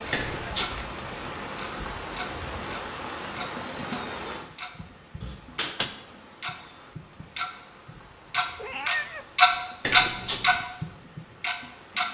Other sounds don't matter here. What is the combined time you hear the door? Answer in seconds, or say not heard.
2 s.